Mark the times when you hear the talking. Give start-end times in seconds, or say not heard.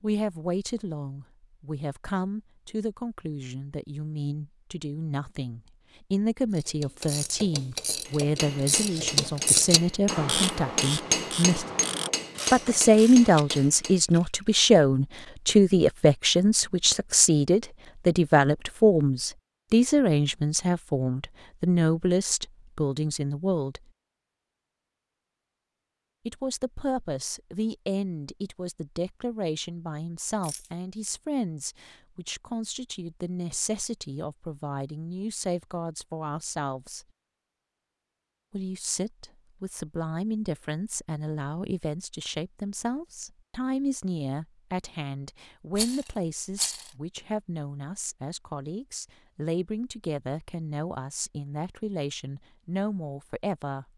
0.0-11.7, 12.5-23.8, 26.2-37.0, 38.5-53.9.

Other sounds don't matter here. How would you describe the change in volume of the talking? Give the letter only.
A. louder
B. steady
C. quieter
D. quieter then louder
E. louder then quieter
E.